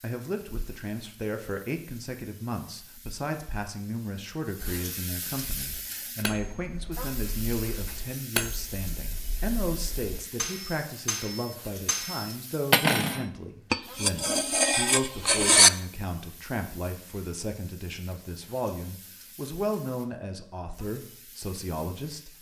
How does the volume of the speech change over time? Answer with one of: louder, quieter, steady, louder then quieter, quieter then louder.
steady.